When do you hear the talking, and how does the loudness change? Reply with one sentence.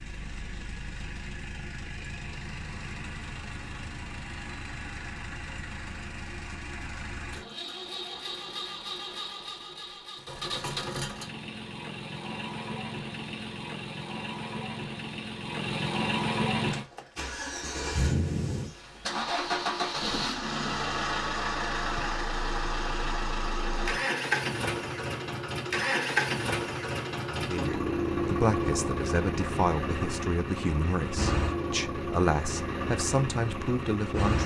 The talking can be heard from 27.3 to 34.4 s, at a steady volume.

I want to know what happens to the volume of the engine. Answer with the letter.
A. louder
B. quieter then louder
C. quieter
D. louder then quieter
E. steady
A.